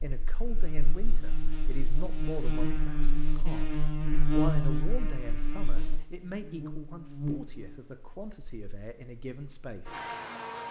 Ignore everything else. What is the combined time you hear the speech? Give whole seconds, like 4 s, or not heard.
10 s.